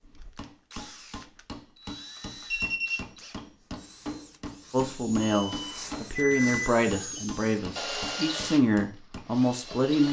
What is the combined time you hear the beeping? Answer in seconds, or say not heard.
3 s.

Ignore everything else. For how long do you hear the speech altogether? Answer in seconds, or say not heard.
5 s.